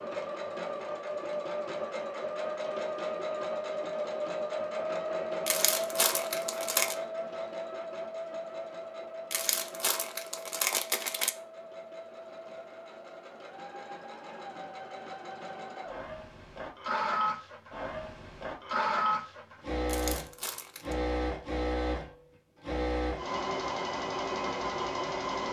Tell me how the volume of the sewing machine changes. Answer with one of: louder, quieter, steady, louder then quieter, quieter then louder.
quieter then louder.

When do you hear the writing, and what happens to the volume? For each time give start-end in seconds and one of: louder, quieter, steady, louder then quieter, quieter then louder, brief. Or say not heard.
not heard.